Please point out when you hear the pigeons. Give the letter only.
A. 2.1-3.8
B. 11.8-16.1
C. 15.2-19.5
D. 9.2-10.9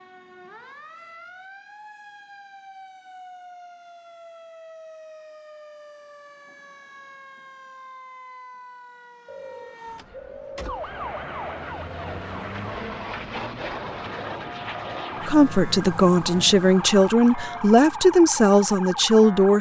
D.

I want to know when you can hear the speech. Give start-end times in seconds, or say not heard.
15.2-19.5.